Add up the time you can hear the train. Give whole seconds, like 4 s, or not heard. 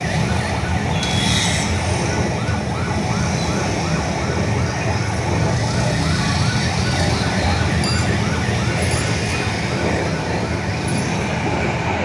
12 s.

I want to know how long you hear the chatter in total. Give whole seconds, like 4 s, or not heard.
not heard.